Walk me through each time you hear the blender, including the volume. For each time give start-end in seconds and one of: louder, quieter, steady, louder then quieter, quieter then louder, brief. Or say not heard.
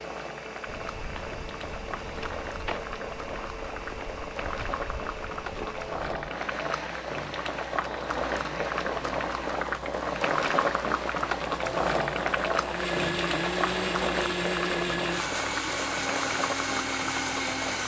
0.0-17.8 louder.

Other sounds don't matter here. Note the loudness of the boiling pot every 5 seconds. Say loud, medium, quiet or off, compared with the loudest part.
medium, loud, loud, medium.